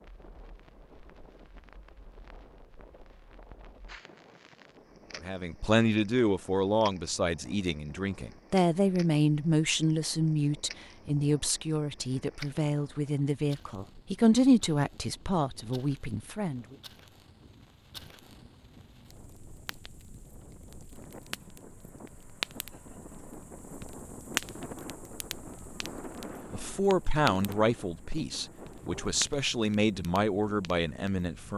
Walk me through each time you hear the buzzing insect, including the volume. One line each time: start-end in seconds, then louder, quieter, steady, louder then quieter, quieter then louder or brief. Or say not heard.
not heard.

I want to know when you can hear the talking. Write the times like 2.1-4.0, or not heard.
5.2-16.8, 26.5-31.5.